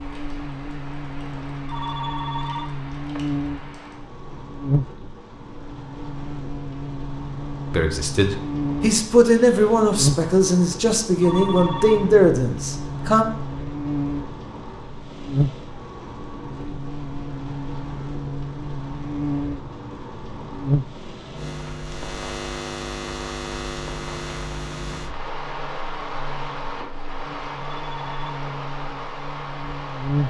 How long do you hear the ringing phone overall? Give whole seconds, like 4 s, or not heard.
3 s.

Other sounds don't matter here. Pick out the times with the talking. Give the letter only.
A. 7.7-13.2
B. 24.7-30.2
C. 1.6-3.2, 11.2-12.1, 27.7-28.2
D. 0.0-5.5
A.